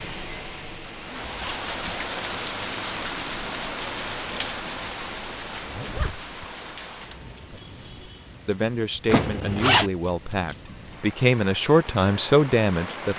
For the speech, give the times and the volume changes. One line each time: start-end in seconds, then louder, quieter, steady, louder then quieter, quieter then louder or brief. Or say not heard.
7.5-13.1 louder.